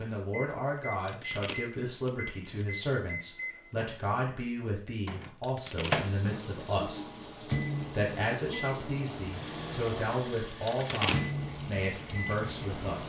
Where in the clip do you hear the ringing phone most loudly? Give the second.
11 s.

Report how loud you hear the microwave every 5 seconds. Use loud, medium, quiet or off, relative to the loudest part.
medium, loud, loud.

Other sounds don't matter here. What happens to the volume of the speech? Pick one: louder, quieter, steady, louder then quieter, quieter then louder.
steady.